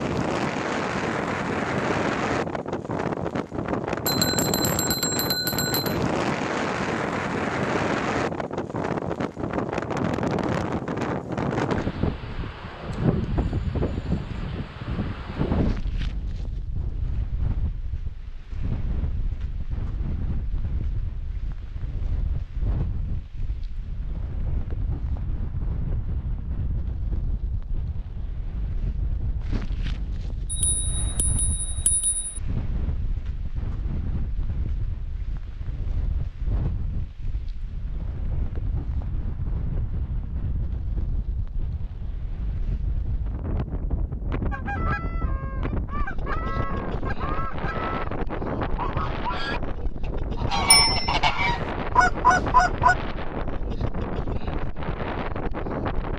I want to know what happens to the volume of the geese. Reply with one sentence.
The volume of the geese goes up.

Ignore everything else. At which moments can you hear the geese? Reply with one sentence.
You can hear the geese from 44.5 to 53.0 s.